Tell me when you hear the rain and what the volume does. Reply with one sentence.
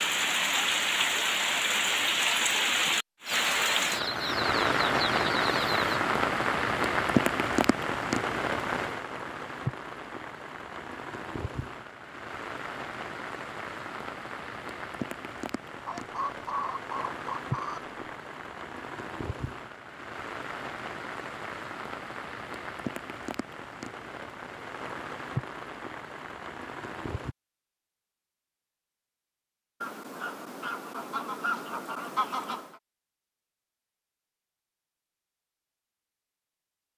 The rain can be heard from 0.0 to 27.4 s, getting quieter.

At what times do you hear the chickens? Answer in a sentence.
You can hear the chickens from 3.2 to 5.8 s, from 15.8 to 17.9 s and from 29.8 to 32.8 s.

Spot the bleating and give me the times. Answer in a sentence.
The bleating can't be heard in this clip.